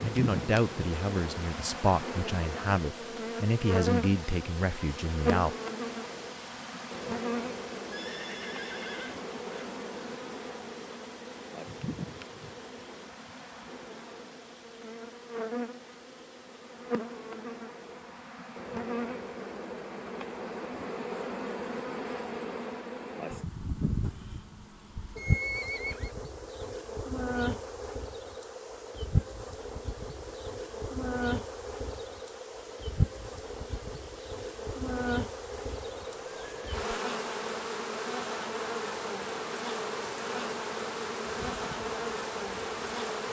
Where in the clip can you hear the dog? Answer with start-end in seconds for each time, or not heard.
not heard.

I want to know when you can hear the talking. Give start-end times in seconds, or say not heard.
0.0-5.5.